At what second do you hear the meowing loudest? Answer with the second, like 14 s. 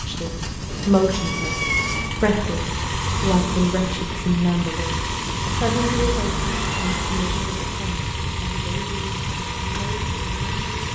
2 s.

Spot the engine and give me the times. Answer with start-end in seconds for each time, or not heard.
0.0-10.9.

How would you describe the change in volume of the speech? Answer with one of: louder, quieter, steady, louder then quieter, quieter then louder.
quieter.